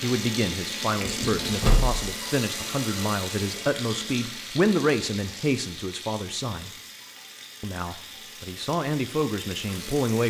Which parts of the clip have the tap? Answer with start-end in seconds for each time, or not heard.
0.0-10.2.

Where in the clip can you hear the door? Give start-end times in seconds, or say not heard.
1.0-2.0.